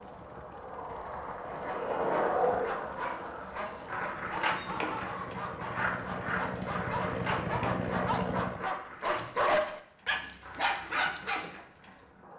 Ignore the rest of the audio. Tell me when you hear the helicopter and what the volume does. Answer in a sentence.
You can hear the helicopter from 0.0 to 8.7 s, getting louder.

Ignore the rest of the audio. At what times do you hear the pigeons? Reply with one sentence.
You can't hear the pigeons here.